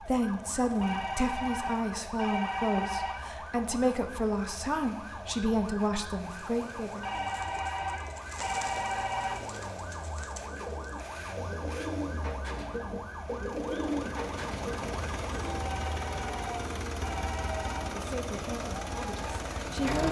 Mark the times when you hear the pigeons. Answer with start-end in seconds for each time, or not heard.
6.3-15.6.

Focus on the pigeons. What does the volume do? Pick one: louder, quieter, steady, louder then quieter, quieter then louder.
louder.